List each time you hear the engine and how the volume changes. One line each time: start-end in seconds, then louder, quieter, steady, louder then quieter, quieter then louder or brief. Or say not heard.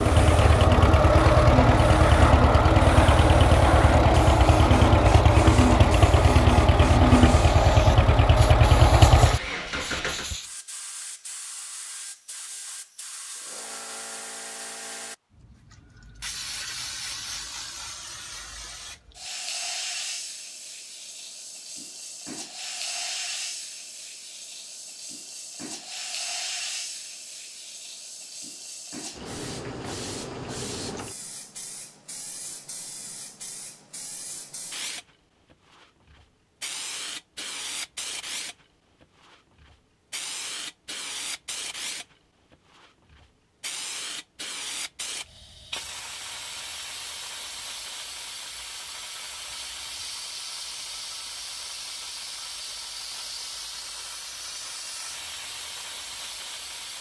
0.0-10.3 steady.